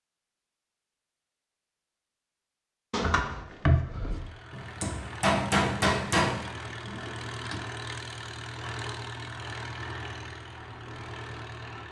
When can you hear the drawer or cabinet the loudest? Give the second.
4 s.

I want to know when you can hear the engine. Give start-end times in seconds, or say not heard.
4.0-11.8.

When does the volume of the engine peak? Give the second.
9 s.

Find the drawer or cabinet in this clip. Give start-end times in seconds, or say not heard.
2.9-4.3, 6.7-7.7.